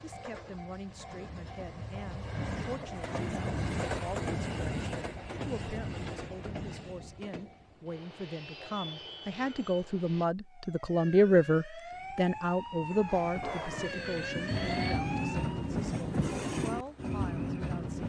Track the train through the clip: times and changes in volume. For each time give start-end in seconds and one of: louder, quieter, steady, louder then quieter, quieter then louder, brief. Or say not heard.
0.0-10.3 louder then quieter
11.9-18.0 louder.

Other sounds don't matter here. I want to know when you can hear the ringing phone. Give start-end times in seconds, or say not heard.
13.8-15.1.